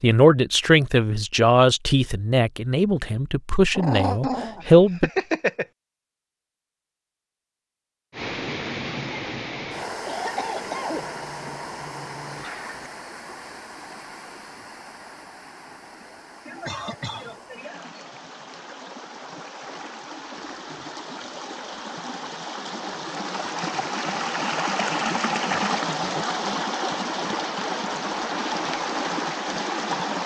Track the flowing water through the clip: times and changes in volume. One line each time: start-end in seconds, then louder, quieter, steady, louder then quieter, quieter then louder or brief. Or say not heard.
8.1-30.2 quieter then louder.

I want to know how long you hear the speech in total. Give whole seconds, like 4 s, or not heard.
5 s.